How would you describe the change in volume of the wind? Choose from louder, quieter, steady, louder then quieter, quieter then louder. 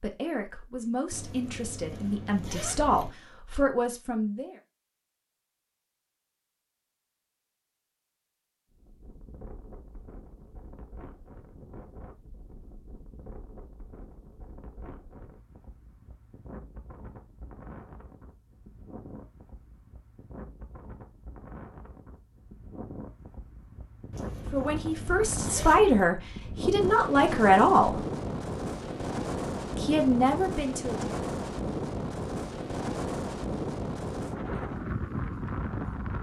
louder.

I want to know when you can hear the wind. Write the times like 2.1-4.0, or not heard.
8.7-36.1.